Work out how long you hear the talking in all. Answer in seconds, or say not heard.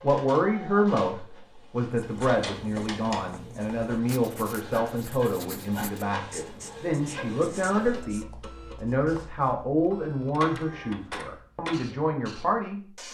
13 s.